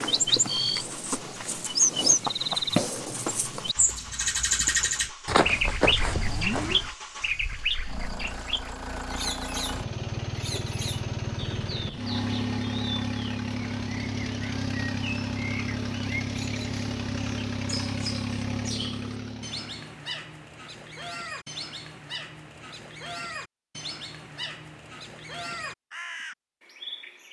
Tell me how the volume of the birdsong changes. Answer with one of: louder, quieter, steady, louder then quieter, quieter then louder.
quieter.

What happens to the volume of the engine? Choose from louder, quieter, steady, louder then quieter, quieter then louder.
louder.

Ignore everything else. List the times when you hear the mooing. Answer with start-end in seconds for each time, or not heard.
5.2-6.8.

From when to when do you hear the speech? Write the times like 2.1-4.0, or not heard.
not heard.